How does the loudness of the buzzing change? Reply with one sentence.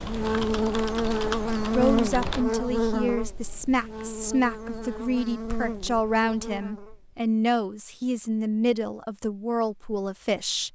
The volume of the buzzing goes down.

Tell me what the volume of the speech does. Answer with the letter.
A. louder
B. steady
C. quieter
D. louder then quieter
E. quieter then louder
B.